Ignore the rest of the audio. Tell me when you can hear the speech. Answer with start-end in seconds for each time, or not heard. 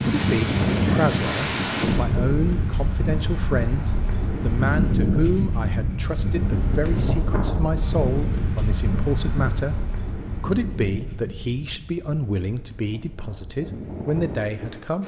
0.1-15.0.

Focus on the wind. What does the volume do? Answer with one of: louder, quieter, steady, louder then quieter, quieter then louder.
quieter.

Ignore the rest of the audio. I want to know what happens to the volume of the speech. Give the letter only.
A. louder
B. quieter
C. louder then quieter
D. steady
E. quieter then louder
D.